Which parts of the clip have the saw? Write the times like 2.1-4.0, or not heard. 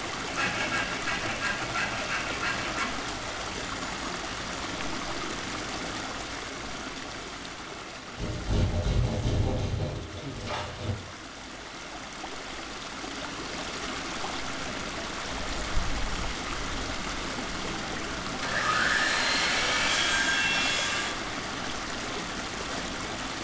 0.2-3.0, 8.2-10.9, 18.4-21.2.